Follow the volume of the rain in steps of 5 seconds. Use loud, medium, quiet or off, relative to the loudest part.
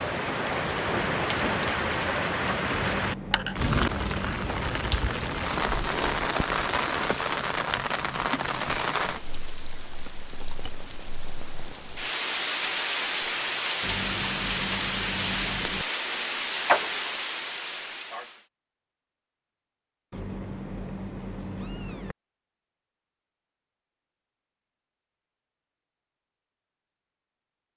loud, loud, loud, loud, off, off.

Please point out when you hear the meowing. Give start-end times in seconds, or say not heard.
2.8-4.7, 13.8-15.8, 20.1-22.1.